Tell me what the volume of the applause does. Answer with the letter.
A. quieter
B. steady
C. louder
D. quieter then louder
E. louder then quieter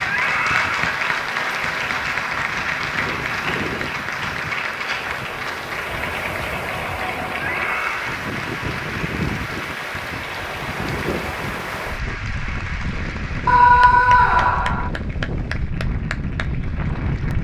A.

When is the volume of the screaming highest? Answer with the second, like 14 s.
14 s.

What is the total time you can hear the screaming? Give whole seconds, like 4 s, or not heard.
3 s.